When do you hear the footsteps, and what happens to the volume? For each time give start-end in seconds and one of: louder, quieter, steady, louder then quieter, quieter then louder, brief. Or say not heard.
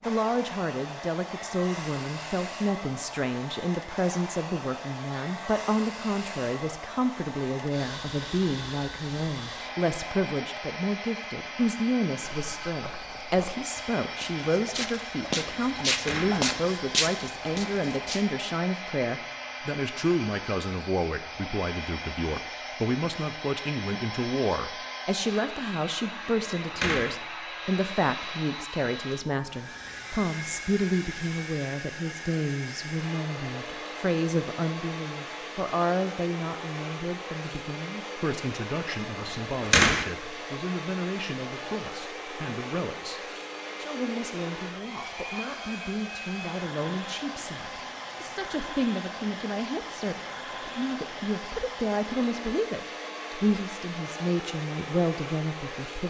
12.2-18.2 louder.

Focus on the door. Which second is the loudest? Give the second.
40 s.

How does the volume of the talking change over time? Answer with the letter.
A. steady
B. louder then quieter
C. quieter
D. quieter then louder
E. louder
A.